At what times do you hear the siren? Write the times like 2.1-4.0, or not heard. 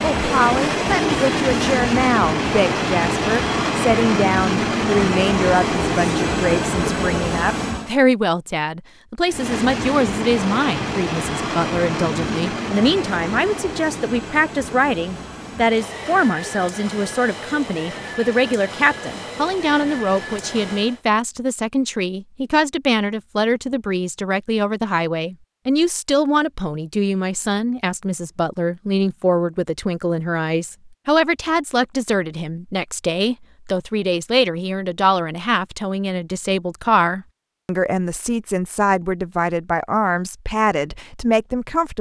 not heard.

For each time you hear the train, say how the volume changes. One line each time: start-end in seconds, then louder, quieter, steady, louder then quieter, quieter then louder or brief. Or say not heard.
0.0-8.0 steady
9.2-21.1 quieter.